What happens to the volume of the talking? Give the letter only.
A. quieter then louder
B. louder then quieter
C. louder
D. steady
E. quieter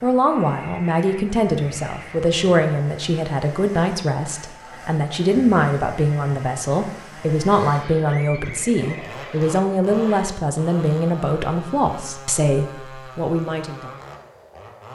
D.